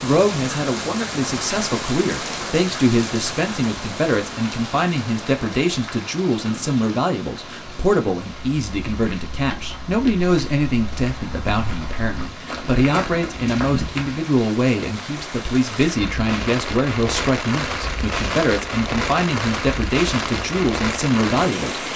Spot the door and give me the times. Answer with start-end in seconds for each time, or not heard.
not heard.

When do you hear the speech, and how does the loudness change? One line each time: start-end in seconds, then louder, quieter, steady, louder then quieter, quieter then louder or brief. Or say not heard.
0.0-21.9 steady.